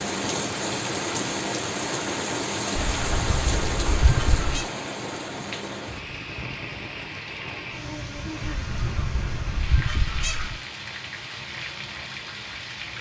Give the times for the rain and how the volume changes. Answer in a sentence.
You can hear the rain from 0.0 to 12.9 s, getting quieter.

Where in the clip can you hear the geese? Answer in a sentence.
The geese can be heard from 2.8 to 4.7 s and from 8.4 to 10.6 s.